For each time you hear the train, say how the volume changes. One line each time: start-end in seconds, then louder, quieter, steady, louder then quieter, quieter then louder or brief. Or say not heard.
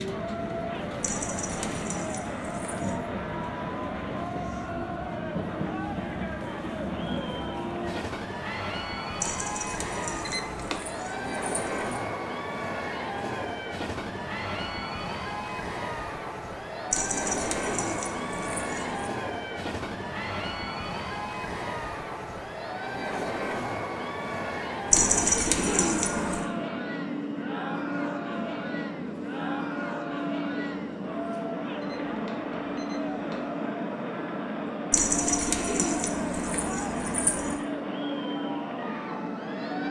0.0-39.8 steady.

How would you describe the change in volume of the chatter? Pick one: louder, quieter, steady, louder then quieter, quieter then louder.
steady.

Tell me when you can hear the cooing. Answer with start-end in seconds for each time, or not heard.
1.0-3.0, 9.2-11.9, 16.9-19.1, 24.9-26.4, 34.9-37.6.